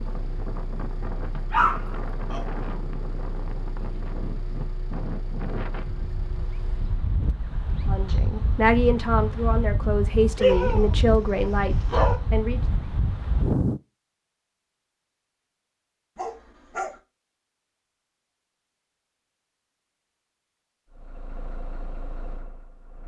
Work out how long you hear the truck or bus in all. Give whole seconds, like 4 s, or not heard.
9 s.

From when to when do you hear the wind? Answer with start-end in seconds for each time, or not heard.
0.0-13.8.